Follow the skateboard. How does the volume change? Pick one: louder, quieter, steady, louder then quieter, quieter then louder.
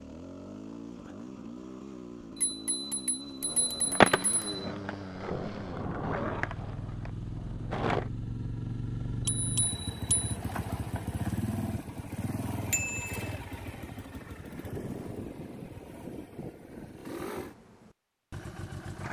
quieter.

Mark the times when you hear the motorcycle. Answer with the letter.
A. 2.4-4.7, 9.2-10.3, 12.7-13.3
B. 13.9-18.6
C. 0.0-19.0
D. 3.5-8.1
C.